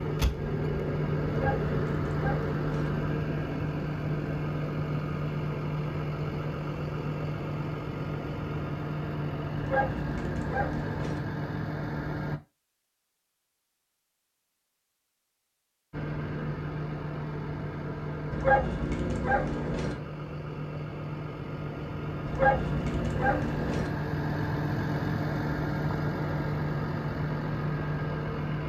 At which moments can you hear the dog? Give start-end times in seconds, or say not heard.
1.2-2.9, 9.6-11.2, 18.3-19.9, 22.2-23.9.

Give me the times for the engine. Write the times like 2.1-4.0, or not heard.
0.0-12.4, 15.9-28.6.